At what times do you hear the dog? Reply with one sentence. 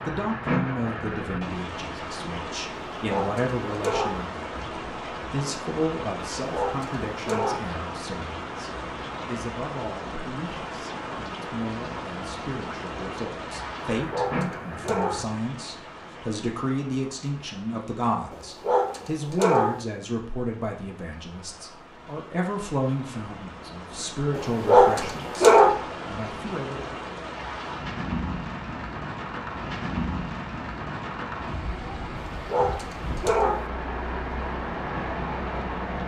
The dog can be heard from 3.0 to 4.2 s, from 6.4 to 7.7 s, from 14.0 to 15.3 s, from 18.3 to 19.9 s, from 24.4 to 25.8 s and from 32.1 to 33.7 s.